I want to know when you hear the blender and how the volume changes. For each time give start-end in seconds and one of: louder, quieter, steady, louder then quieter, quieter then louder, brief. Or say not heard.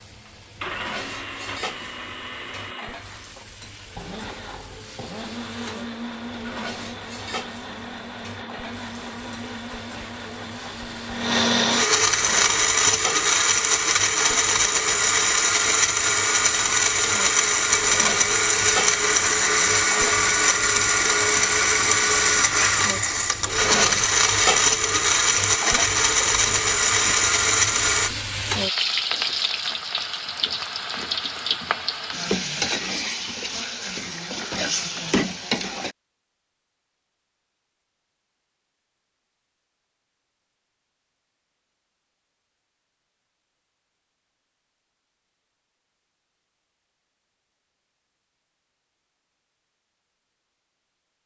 0.0-28.1 louder.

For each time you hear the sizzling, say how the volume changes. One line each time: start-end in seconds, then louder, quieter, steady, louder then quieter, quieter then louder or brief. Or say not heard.
0.0-36.0 louder.